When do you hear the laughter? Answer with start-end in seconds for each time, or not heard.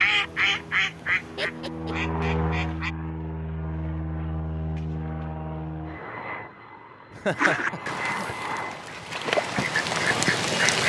1.4-1.9, 7.1-8.3.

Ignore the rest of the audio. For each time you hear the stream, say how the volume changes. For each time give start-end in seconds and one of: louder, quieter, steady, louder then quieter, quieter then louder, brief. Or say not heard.
not heard.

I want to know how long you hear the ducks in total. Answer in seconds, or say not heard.
6 s.